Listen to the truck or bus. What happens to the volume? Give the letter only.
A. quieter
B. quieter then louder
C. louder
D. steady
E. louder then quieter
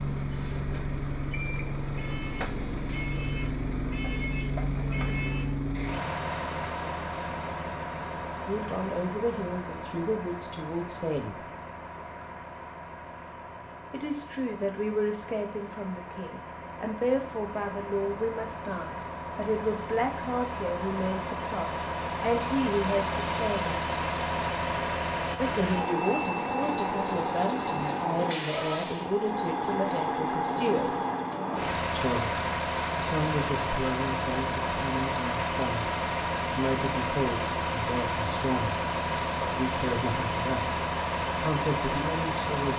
B.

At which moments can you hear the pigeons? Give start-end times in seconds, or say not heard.
not heard.